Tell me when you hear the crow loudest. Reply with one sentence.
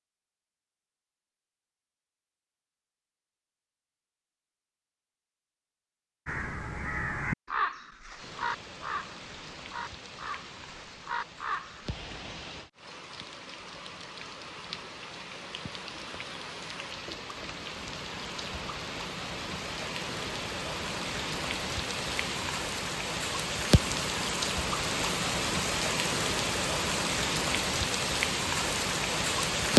The loudest moment of the crow is at 7 seconds.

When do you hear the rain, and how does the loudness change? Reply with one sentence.
You can hear the rain from 8.2 to 29.7 s, getting louder.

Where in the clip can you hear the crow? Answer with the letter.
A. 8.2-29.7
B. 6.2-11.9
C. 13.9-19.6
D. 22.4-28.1
B.